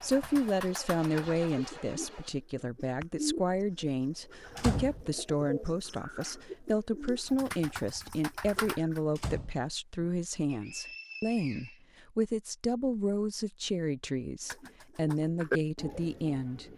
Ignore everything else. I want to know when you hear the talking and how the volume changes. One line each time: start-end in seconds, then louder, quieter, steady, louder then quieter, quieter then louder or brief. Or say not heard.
0.0-16.6 steady.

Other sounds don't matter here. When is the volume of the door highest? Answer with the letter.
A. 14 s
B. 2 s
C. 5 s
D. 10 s
C.